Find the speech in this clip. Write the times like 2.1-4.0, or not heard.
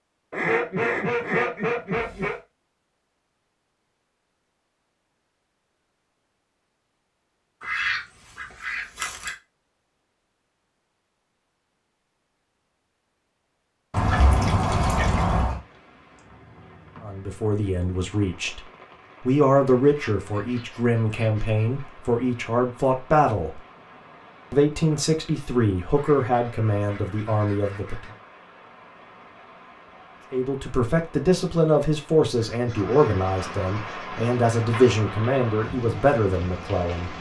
17.0-18.6, 19.2-23.6, 24.5-28.0, 30.3-37.1.